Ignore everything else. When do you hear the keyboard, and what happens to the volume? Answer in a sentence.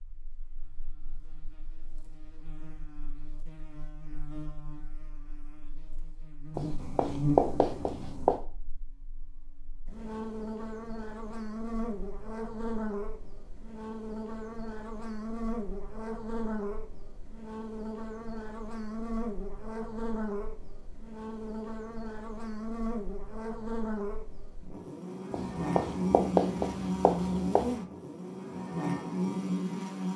The keyboard can't be heard in this clip.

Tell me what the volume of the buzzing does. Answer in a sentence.
The loudness of the buzzing goes up.